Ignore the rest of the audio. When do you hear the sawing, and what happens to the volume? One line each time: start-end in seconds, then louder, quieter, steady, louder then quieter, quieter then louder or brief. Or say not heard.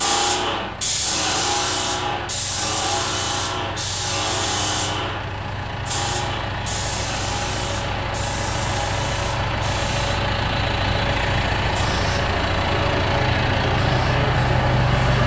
not heard.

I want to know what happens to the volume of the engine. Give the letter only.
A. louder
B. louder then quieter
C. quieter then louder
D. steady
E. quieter
A.